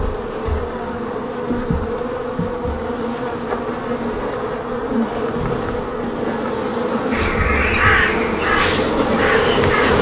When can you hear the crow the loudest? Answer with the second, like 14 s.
8 s.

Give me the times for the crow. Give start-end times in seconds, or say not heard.
7.1-9.9.